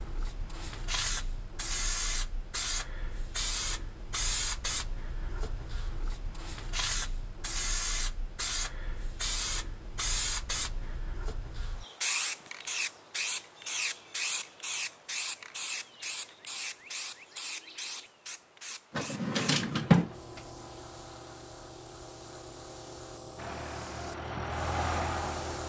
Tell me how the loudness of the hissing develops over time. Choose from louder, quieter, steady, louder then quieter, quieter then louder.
quieter.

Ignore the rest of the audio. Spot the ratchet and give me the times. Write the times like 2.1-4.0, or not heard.
not heard.